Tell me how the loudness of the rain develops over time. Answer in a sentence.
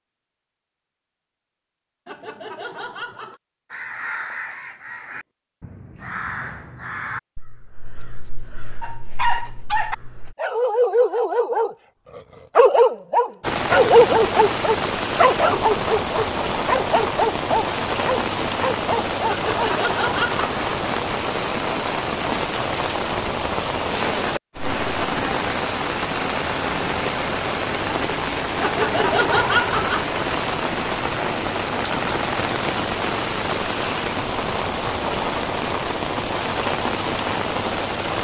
The volume of the rain stays about the same.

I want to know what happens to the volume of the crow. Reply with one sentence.
The volume of the crow goes down.